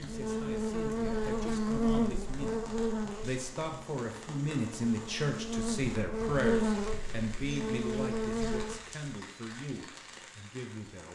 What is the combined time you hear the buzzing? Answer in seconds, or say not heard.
9 s.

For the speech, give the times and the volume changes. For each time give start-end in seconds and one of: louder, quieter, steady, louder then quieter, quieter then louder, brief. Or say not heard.
0.0-2.6 brief
3.2-11.1 quieter.